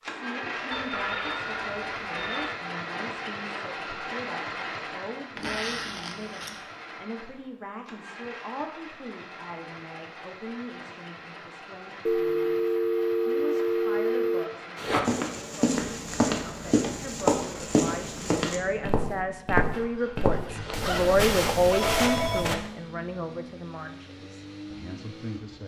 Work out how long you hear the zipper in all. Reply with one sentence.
You can hear the zipper for 3 seconds altogether.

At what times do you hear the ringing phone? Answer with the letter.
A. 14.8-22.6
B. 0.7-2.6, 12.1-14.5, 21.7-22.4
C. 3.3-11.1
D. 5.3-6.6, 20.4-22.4
B.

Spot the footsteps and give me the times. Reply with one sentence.
You can hear the footsteps from 14.8 to 22.6 s.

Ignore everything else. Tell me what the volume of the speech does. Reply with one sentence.
The volume of the speech goes up.